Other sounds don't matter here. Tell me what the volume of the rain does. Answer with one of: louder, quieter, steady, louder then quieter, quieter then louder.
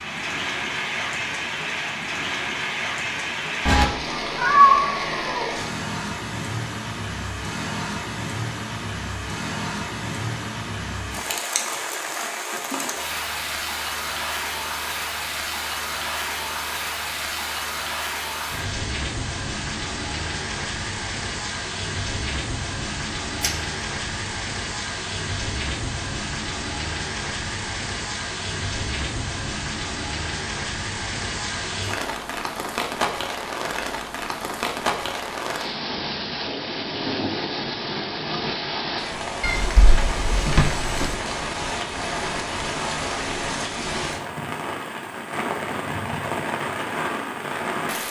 steady.